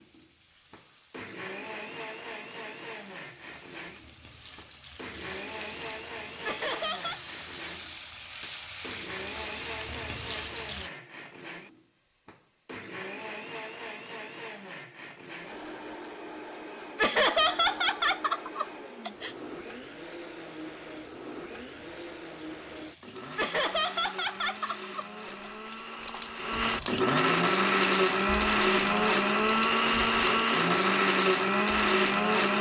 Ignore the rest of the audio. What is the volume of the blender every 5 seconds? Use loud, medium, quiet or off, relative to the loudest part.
quiet, quiet, quiet, quiet, quiet, loud, loud.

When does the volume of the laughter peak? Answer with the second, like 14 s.
17 s.